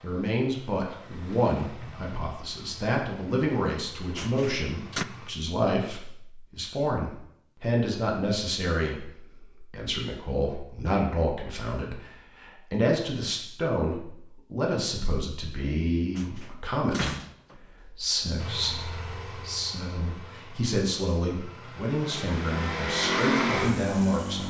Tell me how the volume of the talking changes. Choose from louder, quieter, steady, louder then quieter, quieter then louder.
steady.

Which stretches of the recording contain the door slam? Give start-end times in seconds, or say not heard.
4.2-5.0, 16.1-17.6.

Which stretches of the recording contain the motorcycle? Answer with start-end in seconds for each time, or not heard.
0.0-5.3, 18.4-24.4.